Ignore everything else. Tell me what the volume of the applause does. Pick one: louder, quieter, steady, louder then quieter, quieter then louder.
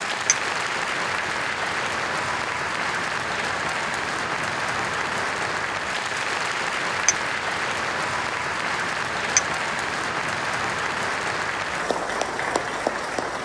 steady.